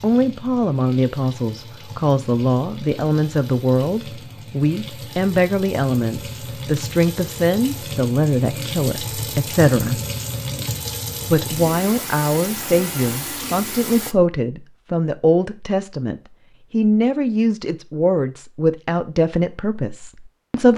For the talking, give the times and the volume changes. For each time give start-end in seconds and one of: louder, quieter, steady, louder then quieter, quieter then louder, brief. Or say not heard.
0.0-10.0 steady
11.3-20.7 steady.